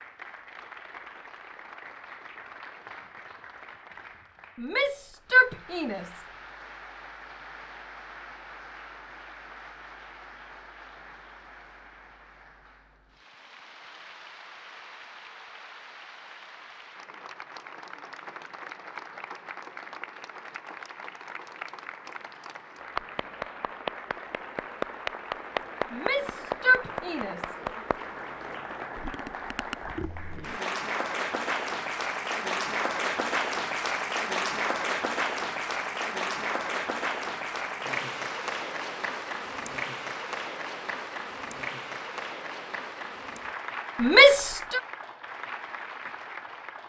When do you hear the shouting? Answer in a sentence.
The shouting can be heard from 4.5 to 6.2 s, from 25.9 to 27.6 s and from 44.0 to 44.8 s.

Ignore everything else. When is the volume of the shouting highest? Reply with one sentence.
The loudest moment of the shouting is at 44 seconds.